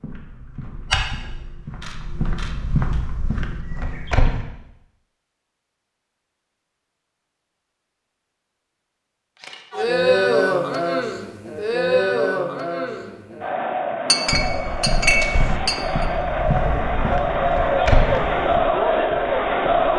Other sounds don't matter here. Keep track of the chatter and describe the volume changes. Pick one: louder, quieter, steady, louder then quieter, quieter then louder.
quieter then louder.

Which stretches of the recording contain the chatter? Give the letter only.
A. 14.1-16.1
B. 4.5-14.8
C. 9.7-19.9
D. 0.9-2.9
C.